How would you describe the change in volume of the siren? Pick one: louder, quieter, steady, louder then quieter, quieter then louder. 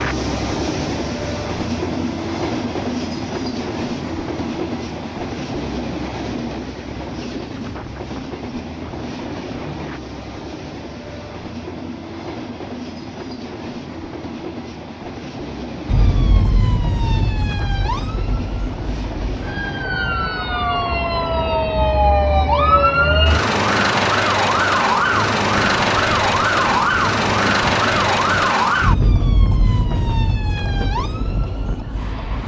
louder then quieter.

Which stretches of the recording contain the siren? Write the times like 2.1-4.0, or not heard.
15.8-32.4.